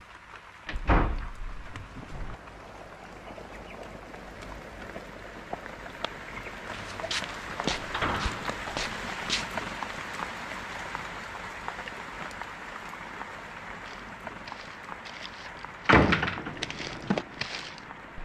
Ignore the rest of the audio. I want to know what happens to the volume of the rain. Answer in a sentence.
The loudness of the rain goes up, then down.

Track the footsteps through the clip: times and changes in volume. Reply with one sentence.
You can hear the footsteps briefly from 6.7 to 9.4 s; and from 13.8 to 18.2 s, getting louder.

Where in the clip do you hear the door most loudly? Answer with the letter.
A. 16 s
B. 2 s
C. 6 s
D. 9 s
A.